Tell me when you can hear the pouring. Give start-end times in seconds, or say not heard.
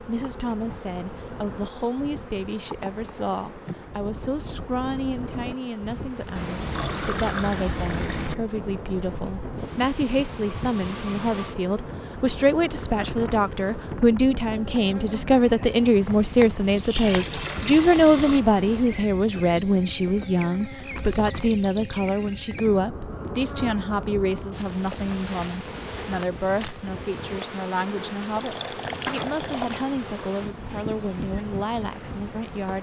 6.3-8.3, 16.8-18.4, 28.4-29.9.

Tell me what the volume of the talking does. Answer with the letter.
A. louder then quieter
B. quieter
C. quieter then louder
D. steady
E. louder
A.